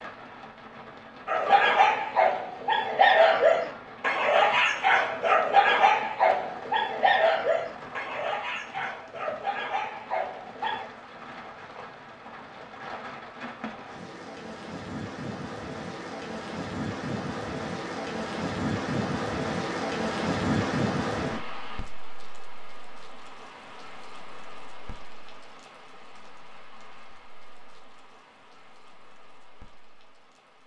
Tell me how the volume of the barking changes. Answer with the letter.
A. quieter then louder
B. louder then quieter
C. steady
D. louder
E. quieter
E.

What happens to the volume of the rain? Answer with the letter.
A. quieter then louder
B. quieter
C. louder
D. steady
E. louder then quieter
E.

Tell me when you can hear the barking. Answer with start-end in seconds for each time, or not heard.
1.2-10.9.